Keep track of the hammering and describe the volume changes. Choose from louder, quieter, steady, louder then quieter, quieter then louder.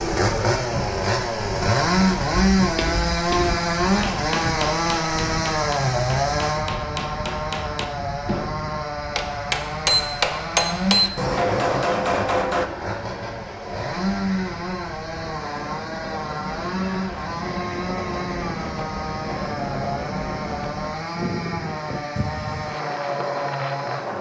quieter then louder.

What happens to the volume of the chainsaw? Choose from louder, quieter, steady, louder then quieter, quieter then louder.
quieter.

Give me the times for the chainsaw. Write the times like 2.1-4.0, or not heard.
0.0-24.1.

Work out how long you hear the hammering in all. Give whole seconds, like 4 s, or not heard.
10 s.